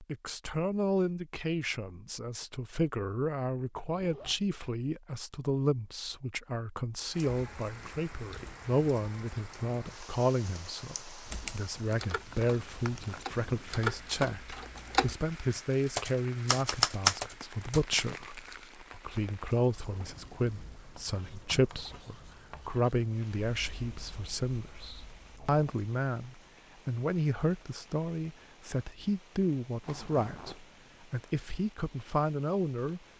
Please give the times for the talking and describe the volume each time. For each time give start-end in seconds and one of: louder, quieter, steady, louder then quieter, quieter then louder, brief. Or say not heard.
0.0-33.0 steady.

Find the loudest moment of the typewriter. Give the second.
17 s.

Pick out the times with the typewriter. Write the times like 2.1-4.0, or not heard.
11.2-18.0.